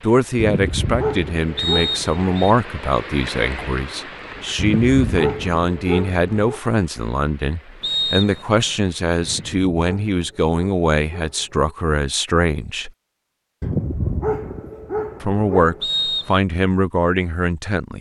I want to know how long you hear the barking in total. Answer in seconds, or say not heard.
9 s.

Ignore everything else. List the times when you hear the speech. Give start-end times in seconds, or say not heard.
0.0-12.9, 15.2-17.9.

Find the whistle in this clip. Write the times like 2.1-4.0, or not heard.
1.6-2.5, 7.8-8.8, 15.8-16.4.